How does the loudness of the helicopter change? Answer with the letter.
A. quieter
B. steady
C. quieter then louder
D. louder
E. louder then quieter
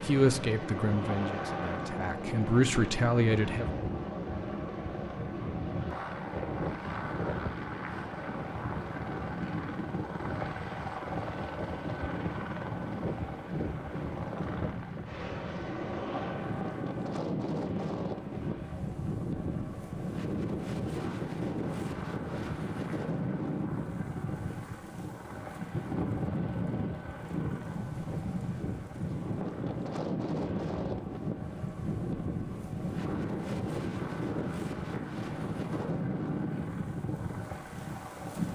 A.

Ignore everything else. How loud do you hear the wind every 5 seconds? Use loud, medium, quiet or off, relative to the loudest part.
medium, medium, medium, loud, loud, loud, loud, loud.